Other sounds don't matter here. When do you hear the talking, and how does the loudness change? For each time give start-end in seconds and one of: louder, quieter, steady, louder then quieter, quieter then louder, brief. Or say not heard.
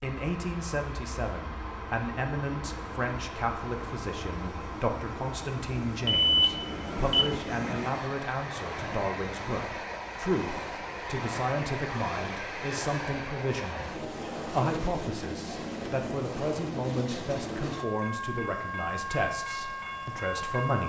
0.0-20.8 steady.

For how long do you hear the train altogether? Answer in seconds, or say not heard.
21 s.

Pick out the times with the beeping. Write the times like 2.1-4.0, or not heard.
6.0-7.3.